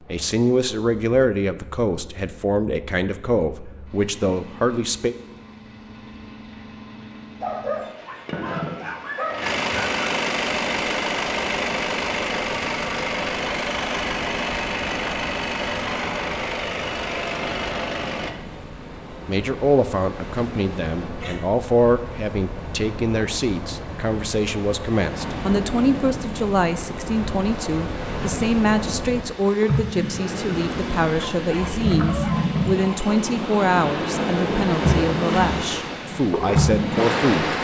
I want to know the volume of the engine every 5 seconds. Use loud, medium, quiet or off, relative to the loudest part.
quiet, medium, loud, loud, off, off, off, off.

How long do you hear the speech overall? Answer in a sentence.
The speech can be heard for 23 seconds in total.